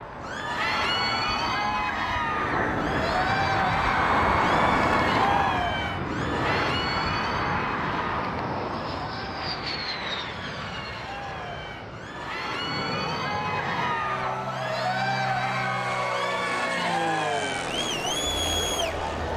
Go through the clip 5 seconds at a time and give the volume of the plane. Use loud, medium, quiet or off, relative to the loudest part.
loud, loud, medium, medium.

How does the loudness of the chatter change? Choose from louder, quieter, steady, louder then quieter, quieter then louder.
quieter then louder.